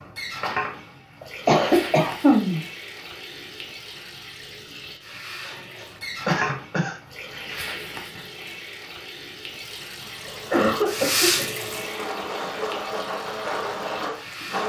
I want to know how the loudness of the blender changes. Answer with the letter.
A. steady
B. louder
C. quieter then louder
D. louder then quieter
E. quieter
B.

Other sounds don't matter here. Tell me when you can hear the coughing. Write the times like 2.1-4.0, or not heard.
1.2-2.6, 5.5-7.0, 10.2-11.4.